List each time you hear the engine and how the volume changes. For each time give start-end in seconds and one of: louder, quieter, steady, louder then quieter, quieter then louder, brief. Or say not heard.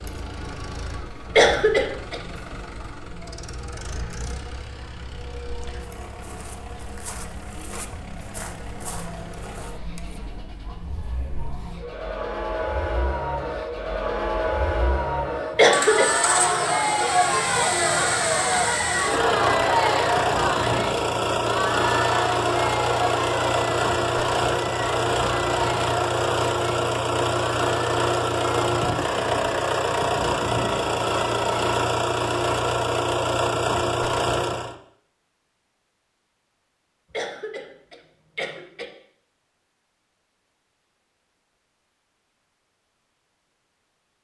0.0-34.8 louder.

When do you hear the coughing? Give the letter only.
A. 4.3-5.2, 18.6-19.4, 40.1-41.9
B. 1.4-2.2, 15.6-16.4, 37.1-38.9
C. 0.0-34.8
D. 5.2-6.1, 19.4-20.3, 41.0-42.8
B.